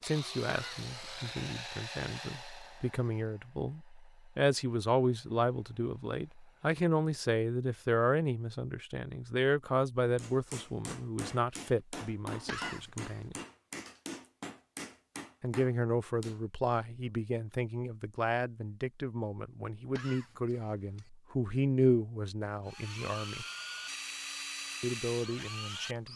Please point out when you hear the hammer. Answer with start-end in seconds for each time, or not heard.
10.2-16.4.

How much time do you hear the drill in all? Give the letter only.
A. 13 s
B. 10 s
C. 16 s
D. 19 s
B.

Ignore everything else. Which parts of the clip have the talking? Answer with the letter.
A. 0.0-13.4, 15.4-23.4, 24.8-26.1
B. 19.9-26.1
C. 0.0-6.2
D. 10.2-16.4
A.